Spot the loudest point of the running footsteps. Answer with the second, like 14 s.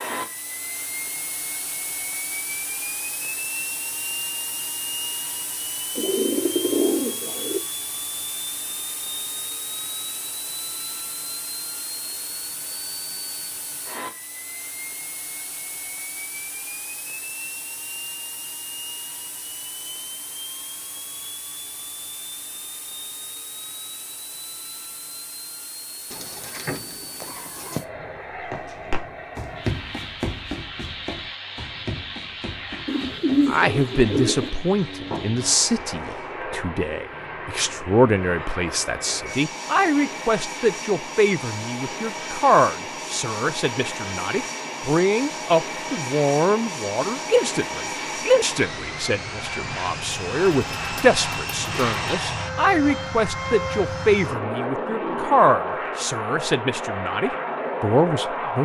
30 s.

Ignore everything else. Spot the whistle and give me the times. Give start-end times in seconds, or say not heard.
not heard.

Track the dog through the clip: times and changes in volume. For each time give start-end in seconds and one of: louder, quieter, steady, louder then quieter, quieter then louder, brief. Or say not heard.
not heard.